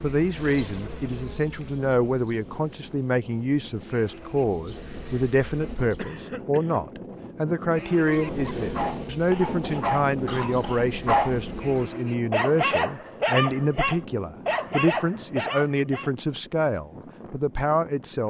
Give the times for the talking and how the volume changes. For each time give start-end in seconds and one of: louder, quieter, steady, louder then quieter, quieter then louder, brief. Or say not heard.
0.0-18.2 steady.